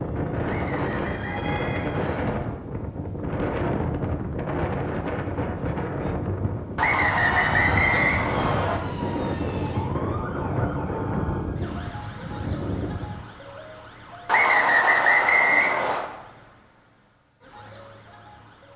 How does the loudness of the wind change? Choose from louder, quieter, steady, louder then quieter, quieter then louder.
steady.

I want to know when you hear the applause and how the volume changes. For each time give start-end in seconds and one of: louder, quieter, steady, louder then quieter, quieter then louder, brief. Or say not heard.
not heard.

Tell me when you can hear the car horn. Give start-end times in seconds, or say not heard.
not heard.